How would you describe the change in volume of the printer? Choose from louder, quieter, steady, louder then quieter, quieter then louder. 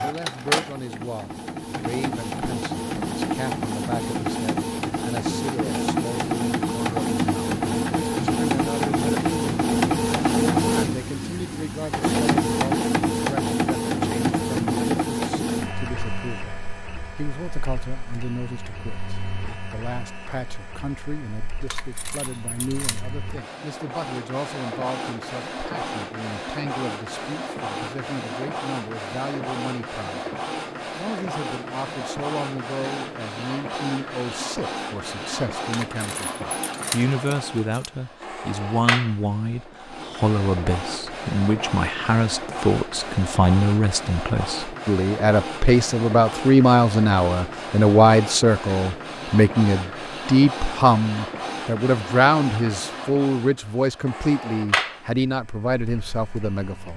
quieter.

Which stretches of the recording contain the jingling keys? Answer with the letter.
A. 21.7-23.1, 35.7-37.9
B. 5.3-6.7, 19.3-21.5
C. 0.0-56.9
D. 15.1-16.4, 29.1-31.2
A.